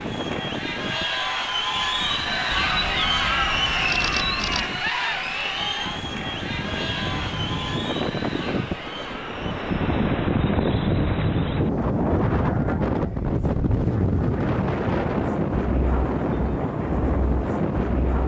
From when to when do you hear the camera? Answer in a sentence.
You can hear the camera from 2.5 to 4.7 s.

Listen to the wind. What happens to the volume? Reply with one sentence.
The volume of the wind goes up.